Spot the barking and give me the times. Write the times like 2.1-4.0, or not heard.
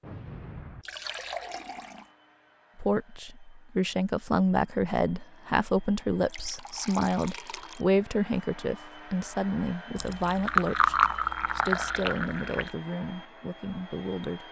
not heard.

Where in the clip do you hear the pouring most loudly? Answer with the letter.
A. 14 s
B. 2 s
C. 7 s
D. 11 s
D.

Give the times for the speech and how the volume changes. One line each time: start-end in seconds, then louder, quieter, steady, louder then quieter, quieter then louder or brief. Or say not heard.
2.8-14.4 quieter.